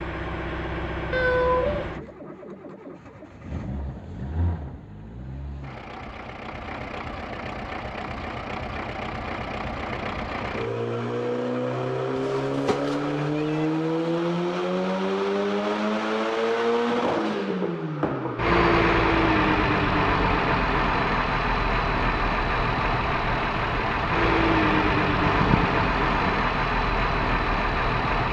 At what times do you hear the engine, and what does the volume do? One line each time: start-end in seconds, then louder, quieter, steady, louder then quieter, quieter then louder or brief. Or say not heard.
0.0-28.2 louder.